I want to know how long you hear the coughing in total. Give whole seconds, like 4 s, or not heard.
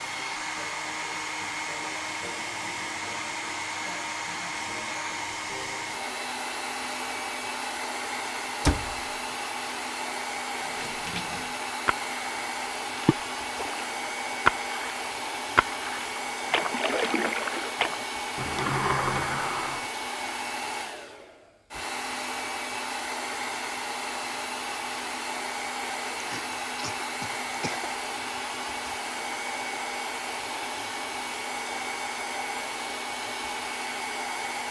2 s.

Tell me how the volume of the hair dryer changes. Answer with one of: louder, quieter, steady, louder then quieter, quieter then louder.
steady.